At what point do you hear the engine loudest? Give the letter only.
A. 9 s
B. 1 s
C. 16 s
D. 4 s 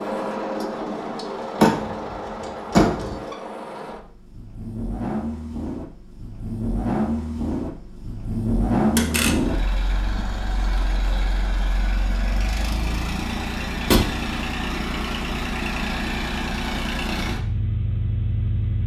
A.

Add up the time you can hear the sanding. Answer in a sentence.
The sanding can't be heard in this clip.